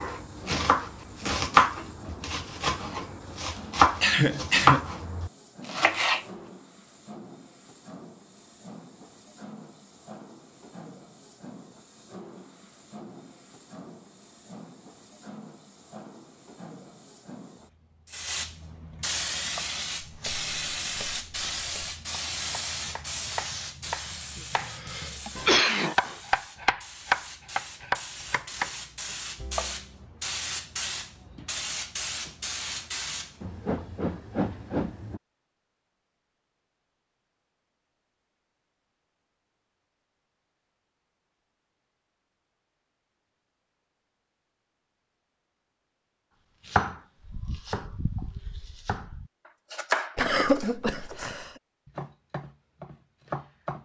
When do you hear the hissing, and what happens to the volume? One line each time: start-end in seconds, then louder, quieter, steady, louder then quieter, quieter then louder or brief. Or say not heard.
0.0-35.2 louder.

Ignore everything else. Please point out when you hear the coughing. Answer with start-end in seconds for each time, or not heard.
4.0-4.9, 24.7-26.2, 50.1-51.5.